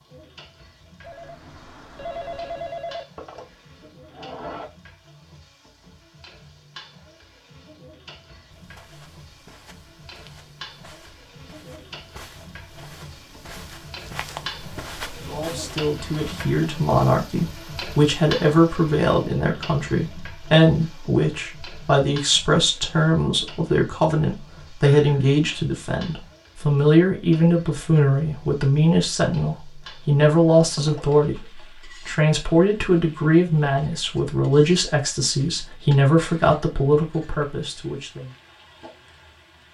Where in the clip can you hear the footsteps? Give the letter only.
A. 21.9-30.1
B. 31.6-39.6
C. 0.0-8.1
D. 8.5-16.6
D.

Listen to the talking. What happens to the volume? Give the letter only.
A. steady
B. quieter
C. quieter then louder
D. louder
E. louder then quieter
A.